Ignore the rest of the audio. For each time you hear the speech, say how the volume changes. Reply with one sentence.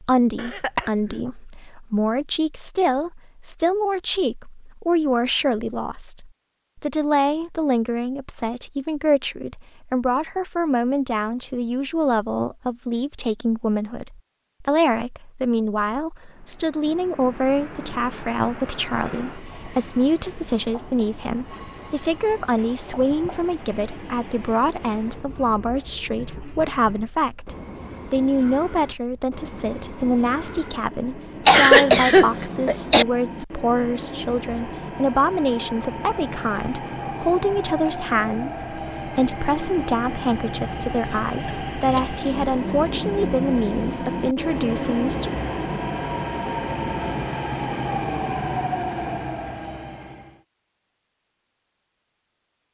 The speech can be heard from 0.0 to 45.3 s, at a steady volume.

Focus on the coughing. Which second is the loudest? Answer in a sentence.
The volume of the coughing peaks at 32 seconds.